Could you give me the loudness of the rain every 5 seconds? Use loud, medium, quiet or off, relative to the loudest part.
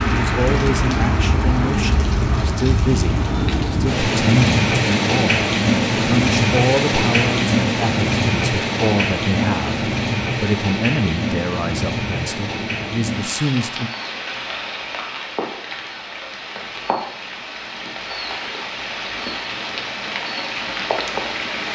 loud, loud, medium, medium, medium.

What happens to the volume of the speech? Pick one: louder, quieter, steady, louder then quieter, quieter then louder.
steady.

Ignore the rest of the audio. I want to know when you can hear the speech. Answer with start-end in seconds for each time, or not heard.
0.0-13.9.